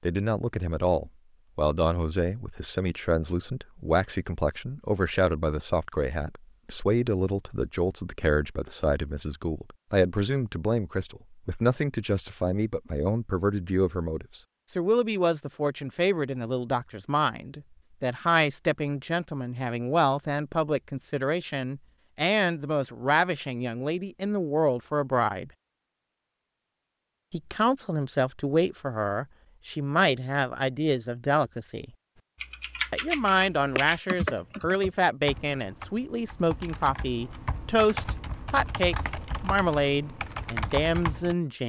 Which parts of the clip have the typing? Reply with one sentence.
You can hear the typing from 32.4 to 41.4 s.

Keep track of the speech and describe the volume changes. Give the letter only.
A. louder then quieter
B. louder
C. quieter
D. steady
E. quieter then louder
D.